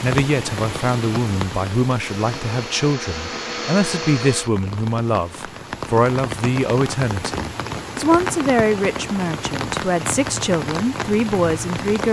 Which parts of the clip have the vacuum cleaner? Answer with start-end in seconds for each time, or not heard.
2.0-4.5.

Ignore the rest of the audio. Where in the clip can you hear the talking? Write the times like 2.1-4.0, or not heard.
0.0-12.0.